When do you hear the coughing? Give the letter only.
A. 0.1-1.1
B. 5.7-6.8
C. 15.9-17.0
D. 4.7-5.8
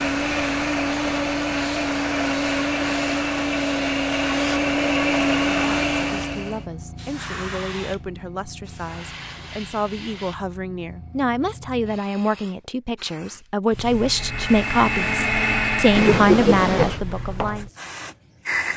C.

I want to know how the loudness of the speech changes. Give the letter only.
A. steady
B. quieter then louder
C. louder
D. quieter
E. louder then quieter
C.